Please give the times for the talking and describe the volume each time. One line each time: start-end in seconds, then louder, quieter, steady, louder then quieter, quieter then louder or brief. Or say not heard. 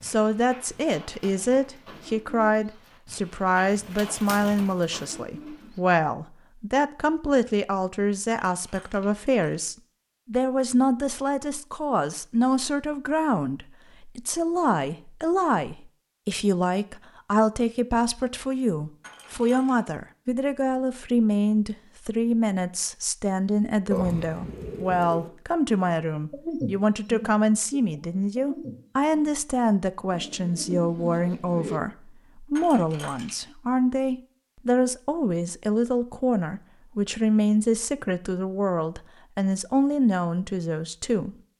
0.0-41.4 steady.